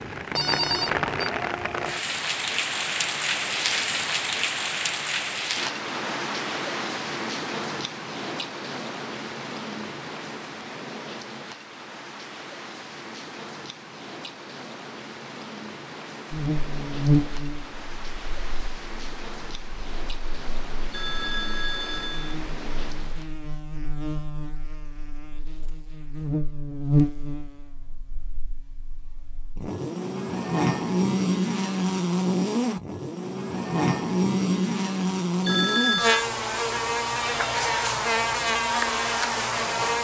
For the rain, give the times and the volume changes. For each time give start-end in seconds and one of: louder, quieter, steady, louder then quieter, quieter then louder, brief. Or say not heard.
0.0-23.4 quieter.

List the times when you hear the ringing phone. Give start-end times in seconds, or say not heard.
0.3-1.1, 20.9-22.4, 35.4-36.2.